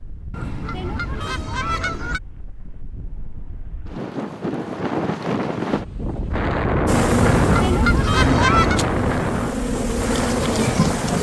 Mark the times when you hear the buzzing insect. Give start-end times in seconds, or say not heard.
6.8-11.1.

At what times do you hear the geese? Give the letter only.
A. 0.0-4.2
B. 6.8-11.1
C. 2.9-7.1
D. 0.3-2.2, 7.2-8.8
D.